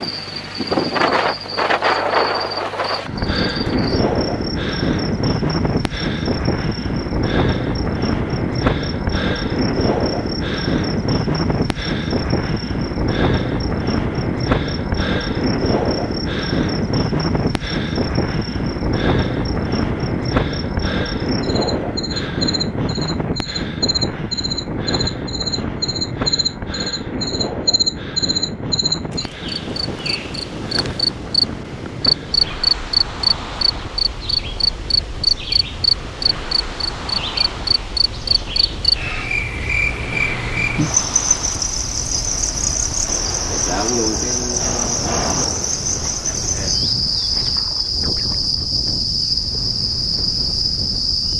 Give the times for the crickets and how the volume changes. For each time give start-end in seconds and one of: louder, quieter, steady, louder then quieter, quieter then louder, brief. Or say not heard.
0.0-51.3 louder.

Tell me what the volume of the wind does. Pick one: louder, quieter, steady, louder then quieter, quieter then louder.
quieter.